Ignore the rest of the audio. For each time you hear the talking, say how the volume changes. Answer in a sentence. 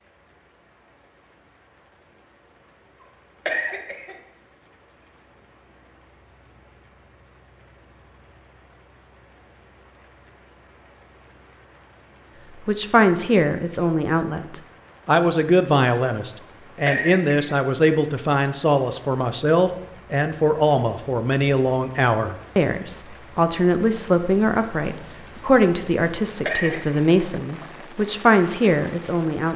The talking can be heard from 12.6 to 29.5 s, at a steady volume.